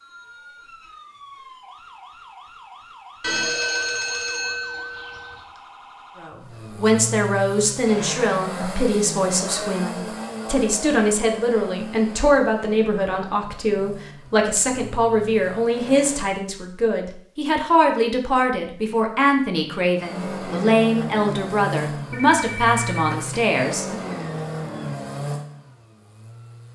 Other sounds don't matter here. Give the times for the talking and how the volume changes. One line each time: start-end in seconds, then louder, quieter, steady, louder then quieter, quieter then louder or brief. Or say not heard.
6.2-24.0 steady.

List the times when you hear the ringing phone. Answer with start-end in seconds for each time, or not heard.
3.2-5.4, 22.1-23.4.